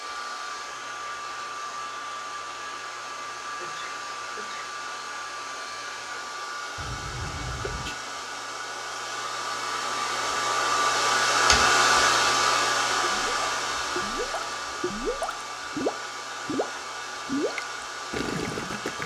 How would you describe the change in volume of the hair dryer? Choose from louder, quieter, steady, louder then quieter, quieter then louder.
louder then quieter.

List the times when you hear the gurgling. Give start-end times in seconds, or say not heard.
13.1-19.0.